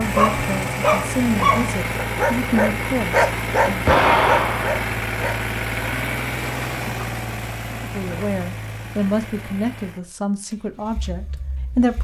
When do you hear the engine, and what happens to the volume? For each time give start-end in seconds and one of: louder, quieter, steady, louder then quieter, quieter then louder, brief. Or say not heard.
0.0-11.9 quieter.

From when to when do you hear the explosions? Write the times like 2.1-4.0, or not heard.
3.9-4.8.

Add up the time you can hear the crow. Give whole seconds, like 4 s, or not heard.
not heard.